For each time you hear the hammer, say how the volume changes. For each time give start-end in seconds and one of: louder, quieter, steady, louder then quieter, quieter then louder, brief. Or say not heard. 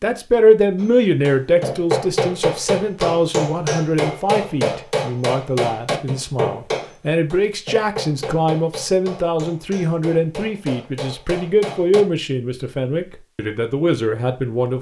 0.8-12.1 quieter.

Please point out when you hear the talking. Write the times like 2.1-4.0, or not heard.
0.0-14.7.